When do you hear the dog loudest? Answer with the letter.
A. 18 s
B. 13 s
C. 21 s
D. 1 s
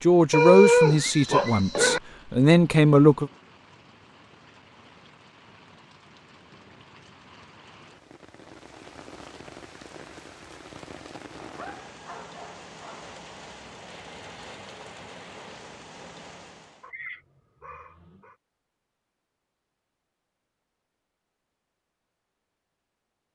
D.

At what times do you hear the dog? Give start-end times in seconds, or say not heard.
0.3-2.0, 11.5-13.1, 16.8-18.4.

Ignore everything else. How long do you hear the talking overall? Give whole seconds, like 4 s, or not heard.
3 s.